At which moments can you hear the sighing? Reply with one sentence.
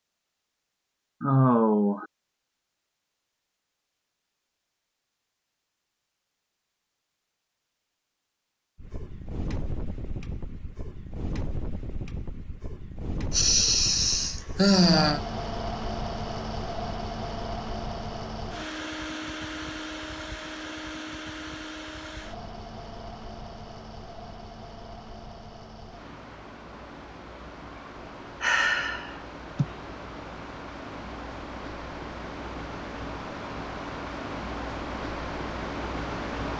You can hear the sighing from 1.2 to 2.0 s, from 13.3 to 15.2 s and from 28.4 to 29.6 s.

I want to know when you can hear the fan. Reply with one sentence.
You can hear the fan from 8.8 to 36.5 s.